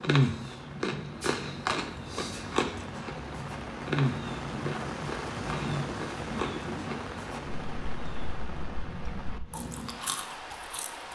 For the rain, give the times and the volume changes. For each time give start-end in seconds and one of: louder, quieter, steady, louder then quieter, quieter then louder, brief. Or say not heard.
0.0-11.1 louder then quieter.